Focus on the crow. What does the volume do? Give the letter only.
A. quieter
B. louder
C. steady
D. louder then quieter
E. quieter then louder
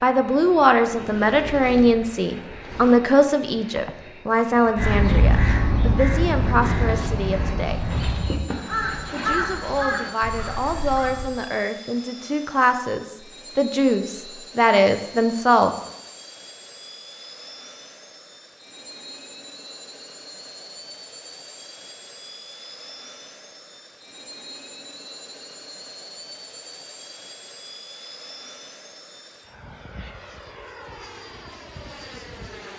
A.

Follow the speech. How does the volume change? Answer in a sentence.
The volume of the speech goes down, then up.